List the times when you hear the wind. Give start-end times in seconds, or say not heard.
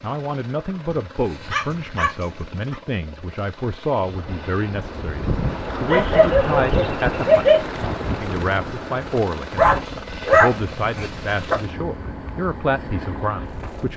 4.0-13.9.